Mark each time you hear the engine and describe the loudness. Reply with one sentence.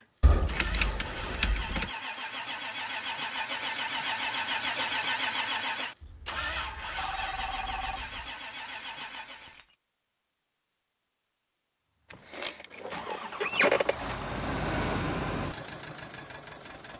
You can hear the engine from 0.0 to 9.7 s, getting louder then quieter; and from 12.1 to 16.9 s, getting louder then quieter.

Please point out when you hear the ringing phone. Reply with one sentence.
The ringing phone can be heard from 6.0 to 8.3 s.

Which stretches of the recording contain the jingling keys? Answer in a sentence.
The jingling keys can be heard from 0.2 to 1.9 s, from 7.8 to 9.8 s and from 12.1 to 14.5 s.